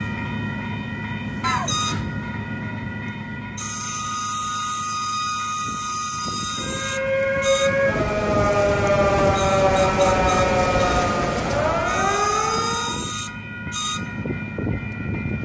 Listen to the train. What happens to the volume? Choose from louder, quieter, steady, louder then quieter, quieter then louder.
steady.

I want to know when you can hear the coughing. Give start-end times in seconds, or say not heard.
1.4-2.0.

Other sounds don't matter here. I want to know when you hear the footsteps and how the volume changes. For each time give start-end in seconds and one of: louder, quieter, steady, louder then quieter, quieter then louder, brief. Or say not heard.
not heard.